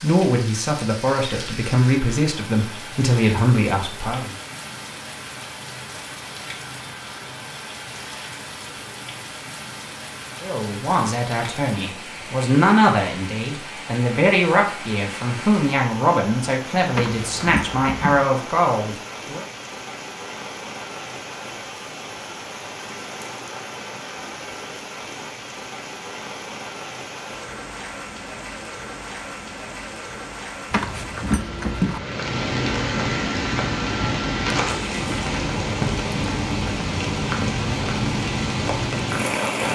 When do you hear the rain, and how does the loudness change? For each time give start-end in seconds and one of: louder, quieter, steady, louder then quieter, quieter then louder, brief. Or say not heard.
0.0-39.7 louder.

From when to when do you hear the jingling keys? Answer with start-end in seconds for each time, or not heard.
16.9-18.2, 30.7-32.0.